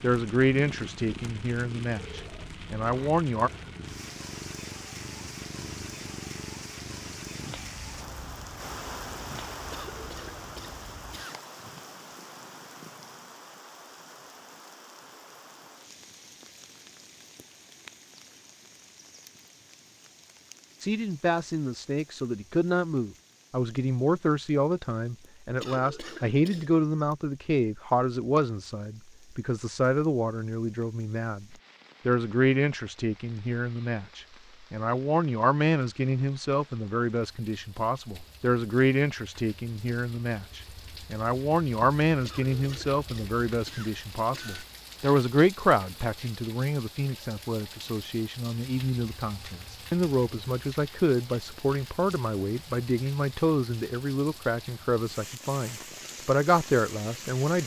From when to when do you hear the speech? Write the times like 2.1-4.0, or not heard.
0.0-3.5, 20.8-57.6.